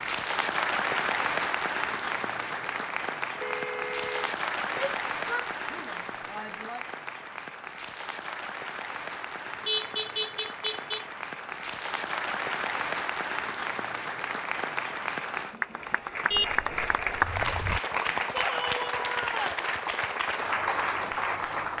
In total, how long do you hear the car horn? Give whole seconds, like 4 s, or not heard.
4 s.